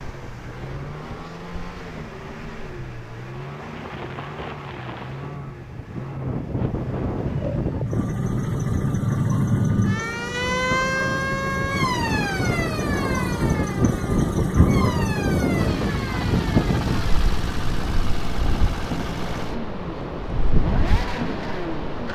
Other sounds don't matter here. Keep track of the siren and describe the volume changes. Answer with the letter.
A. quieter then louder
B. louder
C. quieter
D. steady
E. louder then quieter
C.